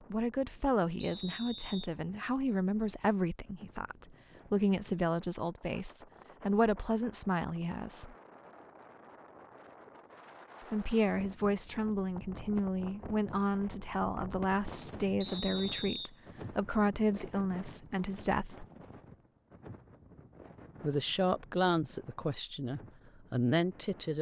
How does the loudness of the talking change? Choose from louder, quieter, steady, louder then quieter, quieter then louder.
steady.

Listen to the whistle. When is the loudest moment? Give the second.
16 s.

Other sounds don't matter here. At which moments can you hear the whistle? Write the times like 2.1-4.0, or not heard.
1.0-1.9, 15.2-16.1.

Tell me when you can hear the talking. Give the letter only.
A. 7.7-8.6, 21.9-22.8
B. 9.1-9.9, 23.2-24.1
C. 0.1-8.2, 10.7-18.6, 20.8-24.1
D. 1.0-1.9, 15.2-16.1
C.